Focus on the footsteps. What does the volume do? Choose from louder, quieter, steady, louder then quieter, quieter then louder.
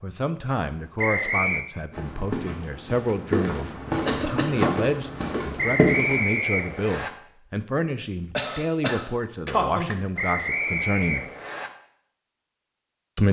louder.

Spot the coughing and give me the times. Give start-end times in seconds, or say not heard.
4.0-4.6, 8.3-9.9.